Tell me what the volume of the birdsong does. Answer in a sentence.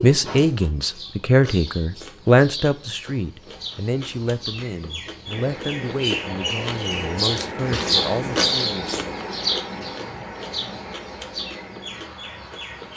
The loudness of the birdsong goes up, then down.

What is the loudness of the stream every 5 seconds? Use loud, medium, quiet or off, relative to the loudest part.
off, loud, medium.